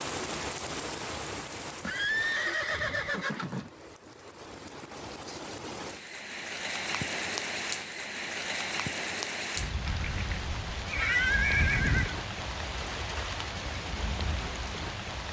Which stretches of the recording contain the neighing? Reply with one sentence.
You can hear the neighing from 1.8 to 3.7 s and from 9.8 to 12.2 s.